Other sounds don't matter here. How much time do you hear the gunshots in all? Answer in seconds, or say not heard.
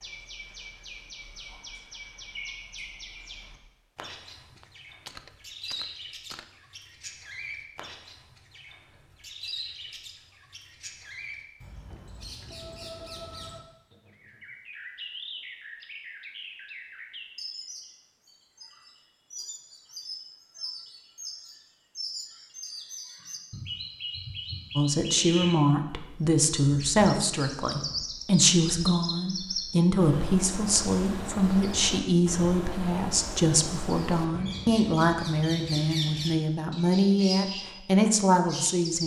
2 s.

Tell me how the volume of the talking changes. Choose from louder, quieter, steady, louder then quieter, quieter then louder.
steady.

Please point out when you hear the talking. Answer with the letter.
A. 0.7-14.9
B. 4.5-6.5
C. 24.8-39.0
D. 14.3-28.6
C.